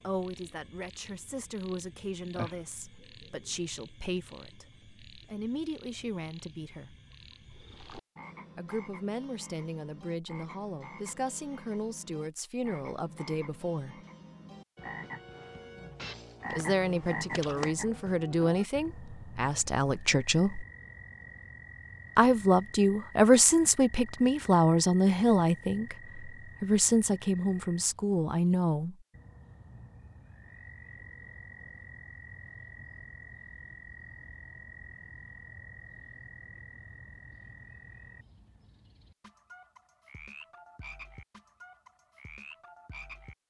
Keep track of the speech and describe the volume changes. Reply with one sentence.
The loudness of the speech goes up.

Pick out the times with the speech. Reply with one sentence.
You can hear the speech from 0.0 to 7.0 s, from 8.6 to 13.9 s, from 16.5 to 20.6 s and from 22.1 to 28.9 s.